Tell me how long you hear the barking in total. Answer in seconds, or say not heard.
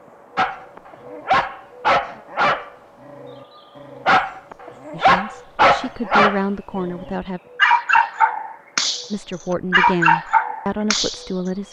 10 s.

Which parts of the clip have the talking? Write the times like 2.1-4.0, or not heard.
4.9-7.4, 9.1-11.6.